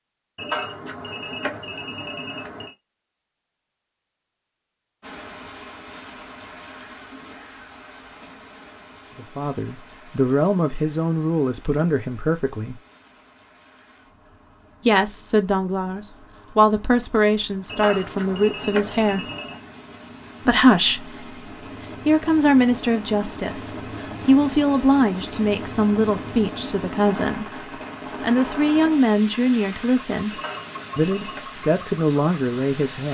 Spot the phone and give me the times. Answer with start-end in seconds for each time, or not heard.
0.3-2.8, 17.6-19.6, 30.3-31.4.